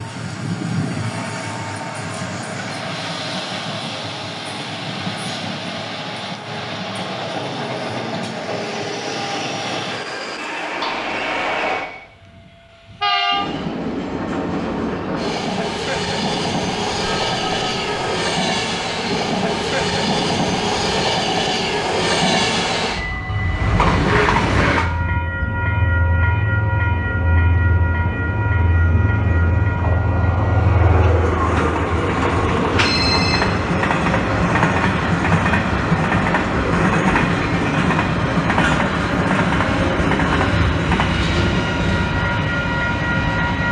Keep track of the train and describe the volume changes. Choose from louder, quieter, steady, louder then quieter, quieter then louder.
louder.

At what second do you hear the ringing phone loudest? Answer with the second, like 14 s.
33 s.